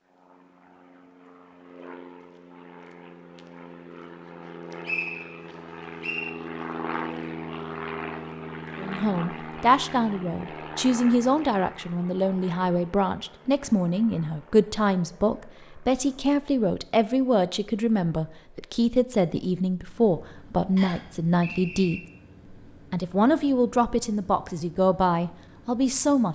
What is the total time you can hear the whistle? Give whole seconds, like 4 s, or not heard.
3 s.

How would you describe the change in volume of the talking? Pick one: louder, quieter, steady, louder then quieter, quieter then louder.
steady.